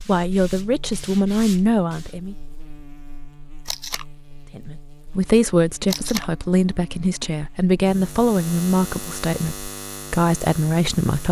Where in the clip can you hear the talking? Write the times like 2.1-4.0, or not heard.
0.0-2.4, 4.5-11.2.